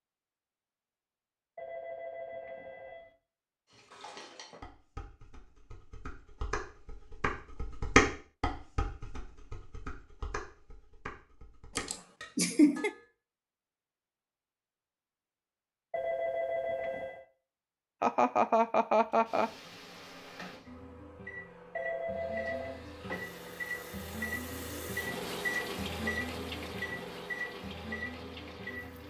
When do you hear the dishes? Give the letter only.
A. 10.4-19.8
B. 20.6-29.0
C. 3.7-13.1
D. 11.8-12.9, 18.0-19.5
C.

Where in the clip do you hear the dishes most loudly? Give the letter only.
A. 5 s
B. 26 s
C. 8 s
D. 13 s
C.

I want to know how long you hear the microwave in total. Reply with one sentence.
You can hear the microwave for 8 seconds altogether.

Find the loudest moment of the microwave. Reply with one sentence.
The loudest moment of the microwave is at 26 seconds.